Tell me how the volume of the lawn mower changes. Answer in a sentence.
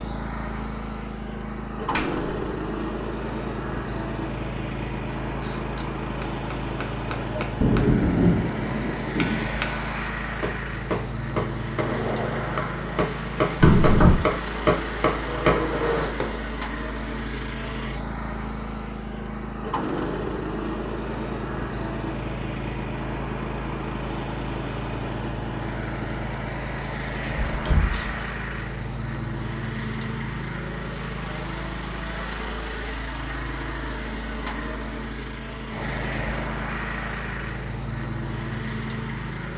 The volume of the lawn mower stays about the same.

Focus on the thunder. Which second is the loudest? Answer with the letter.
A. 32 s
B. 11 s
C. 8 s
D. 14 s
C.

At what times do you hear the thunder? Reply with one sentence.
The thunder can be heard from 7.6 to 9.4 s.